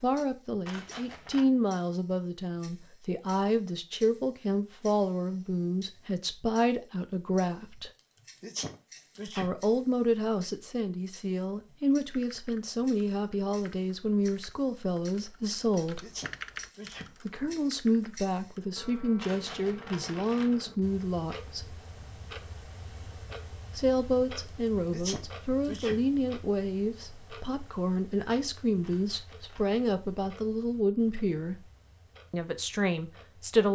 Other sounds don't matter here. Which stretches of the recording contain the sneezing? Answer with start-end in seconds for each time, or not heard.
8.4-9.6, 16.0-17.1, 24.9-26.1.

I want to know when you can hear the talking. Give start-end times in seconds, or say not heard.
0.0-7.9, 9.2-16.1, 17.2-21.8, 23.8-31.7, 32.3-33.6.